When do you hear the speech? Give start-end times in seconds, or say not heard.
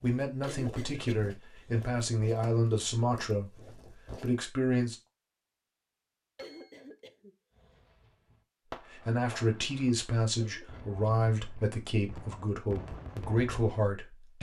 0.0-5.0, 8.9-14.3.